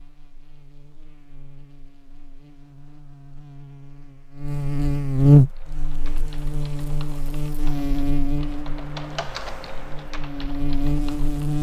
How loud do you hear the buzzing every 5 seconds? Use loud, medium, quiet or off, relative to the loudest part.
quiet, loud, medium.